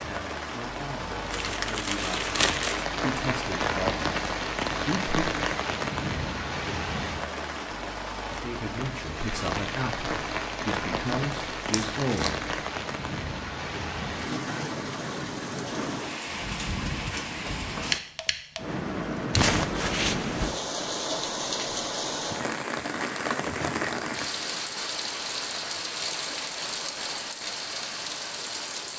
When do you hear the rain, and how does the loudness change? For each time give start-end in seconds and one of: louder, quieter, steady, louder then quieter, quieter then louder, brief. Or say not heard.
0.0-28.9 steady.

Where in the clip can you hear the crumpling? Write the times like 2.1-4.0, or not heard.
1.3-2.9, 11.7-12.3, 19.3-20.6.